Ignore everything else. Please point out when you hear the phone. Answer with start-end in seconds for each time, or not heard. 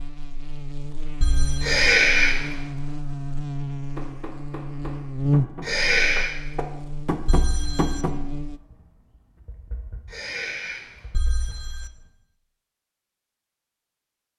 1.2-1.8, 7.2-8.0, 11.1-11.9.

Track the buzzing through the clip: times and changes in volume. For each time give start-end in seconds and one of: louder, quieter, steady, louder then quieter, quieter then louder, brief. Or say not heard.
0.0-8.6 louder then quieter.